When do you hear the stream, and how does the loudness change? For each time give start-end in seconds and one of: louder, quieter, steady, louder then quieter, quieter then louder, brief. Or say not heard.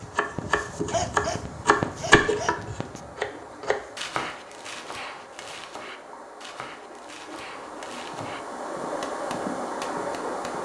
0.0-10.6 louder.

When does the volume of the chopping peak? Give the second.
2 s.